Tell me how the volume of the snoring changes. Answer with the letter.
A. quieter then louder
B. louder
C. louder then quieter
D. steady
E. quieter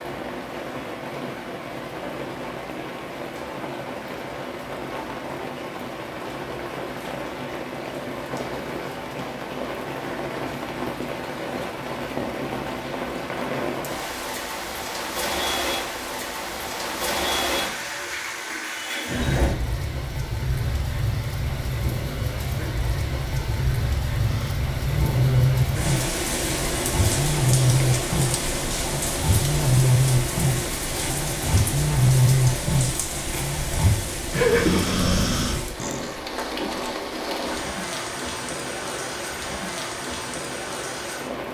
D.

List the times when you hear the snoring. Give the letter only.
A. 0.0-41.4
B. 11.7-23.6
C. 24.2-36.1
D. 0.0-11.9
C.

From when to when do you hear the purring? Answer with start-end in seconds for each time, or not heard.
not heard.